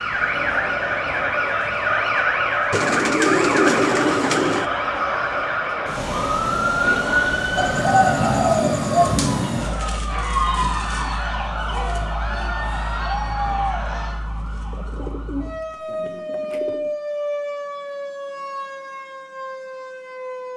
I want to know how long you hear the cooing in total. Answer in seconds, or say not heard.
6 s.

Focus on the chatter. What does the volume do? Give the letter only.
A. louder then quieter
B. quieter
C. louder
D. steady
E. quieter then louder
D.